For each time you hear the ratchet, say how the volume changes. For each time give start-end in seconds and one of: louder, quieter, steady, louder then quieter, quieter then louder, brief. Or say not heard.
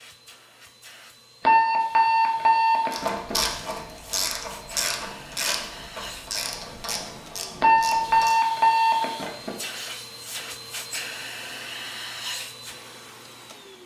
2.9-8.3 quieter.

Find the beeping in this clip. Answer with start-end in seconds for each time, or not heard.
1.4-3.4, 7.6-9.6.